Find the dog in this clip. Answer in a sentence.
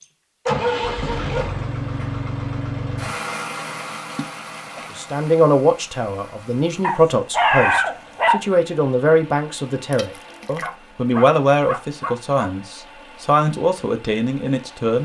You can hear the dog from 0.5 to 2.2 s, from 6.8 to 8.4 s and from 10.3 to 12.5 s.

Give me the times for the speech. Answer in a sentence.
The speech can be heard from 4.9 to 15.0 s.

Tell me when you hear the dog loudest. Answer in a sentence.
The volume of the dog peaks at 8 seconds.